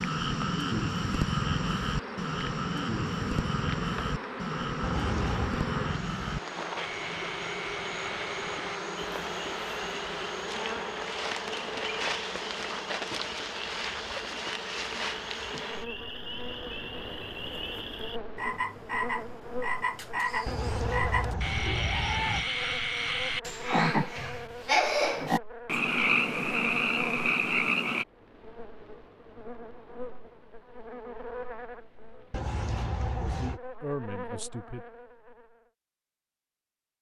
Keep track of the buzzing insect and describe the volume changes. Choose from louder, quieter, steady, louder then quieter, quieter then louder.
quieter.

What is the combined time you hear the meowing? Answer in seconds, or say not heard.
4 s.